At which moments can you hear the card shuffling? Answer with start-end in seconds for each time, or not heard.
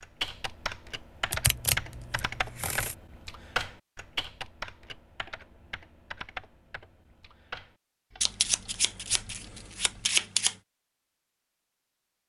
1.3-3.0, 8.2-10.6.